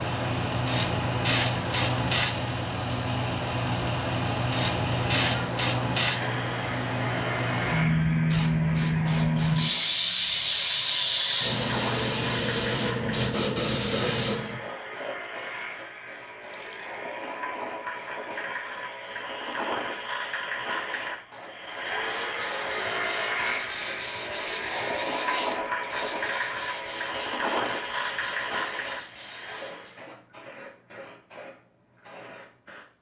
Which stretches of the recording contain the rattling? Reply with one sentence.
You can hear the rattling from 16.1 to 16.9 s.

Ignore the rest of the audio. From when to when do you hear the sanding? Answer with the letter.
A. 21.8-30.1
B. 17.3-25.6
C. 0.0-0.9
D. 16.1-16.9
A.